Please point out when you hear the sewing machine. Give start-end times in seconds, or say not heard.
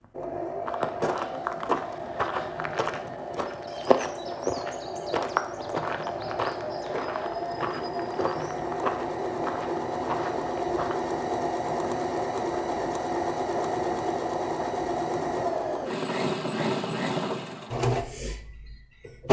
0.0-19.2.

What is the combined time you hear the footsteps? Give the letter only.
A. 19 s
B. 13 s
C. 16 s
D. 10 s
D.